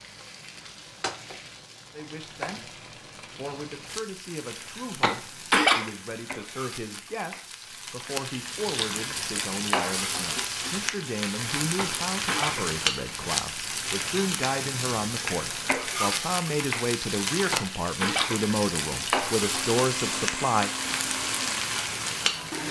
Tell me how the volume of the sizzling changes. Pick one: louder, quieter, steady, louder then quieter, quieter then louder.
louder.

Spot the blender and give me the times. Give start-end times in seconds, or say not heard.
19.4-22.6.